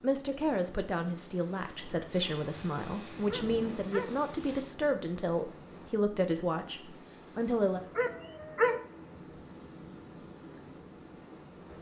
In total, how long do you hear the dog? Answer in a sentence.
The dog can be heard for 2 seconds in total.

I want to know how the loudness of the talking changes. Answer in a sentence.
The loudness of the talking stays about the same.